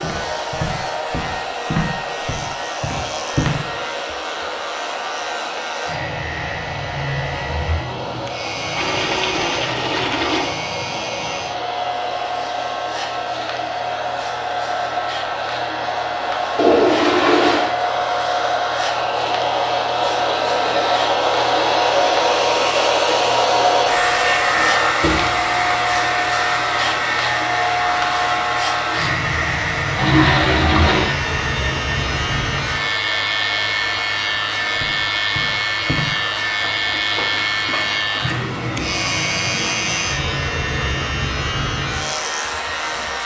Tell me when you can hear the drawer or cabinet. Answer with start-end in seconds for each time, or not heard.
not heard.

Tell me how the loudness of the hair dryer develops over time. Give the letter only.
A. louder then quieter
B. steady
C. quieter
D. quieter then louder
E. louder
A.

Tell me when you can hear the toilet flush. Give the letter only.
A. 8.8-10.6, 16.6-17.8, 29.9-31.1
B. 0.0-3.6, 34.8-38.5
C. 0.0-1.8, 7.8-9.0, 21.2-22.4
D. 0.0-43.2
A.